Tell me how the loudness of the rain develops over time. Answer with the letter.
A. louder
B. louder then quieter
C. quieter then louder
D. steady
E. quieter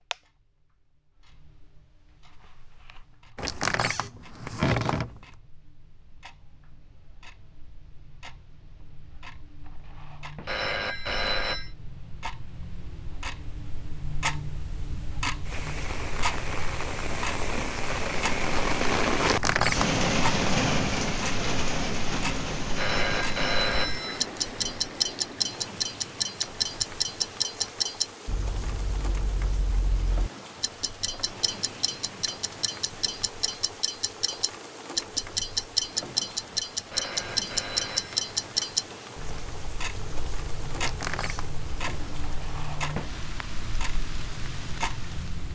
E.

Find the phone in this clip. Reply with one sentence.
The phone can be heard from 10.4 to 11.7 s, from 22.8 to 24.2 s and from 36.9 to 38.2 s.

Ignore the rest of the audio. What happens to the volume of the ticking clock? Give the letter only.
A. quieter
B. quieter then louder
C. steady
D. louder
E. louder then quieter
D.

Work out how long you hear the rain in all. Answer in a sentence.
The rain can be heard for 30 seconds in total.